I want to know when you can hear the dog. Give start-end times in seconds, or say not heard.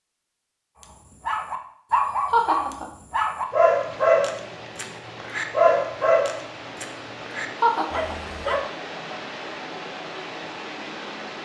0.8-8.7.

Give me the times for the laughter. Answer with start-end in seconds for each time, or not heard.
2.3-2.9, 7.6-8.2.